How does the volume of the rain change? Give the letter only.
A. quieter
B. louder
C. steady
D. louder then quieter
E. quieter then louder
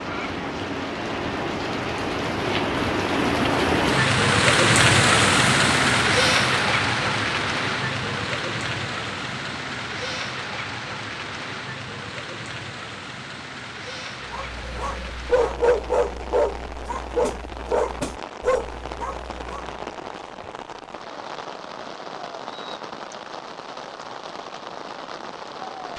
A.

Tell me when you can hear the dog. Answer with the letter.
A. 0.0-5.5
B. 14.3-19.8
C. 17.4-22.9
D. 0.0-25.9
B.